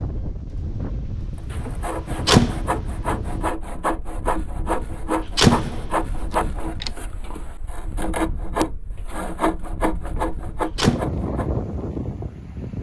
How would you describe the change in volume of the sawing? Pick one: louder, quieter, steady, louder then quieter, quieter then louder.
steady.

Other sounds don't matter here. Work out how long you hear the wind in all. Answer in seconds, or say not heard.
13 s.